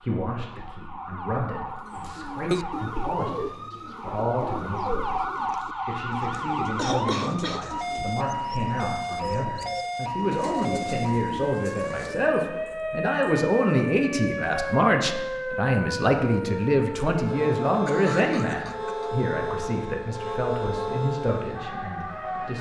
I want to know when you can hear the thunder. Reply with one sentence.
You can't hear the thunder here.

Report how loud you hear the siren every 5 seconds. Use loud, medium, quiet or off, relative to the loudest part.
medium, loud, loud, loud, loud.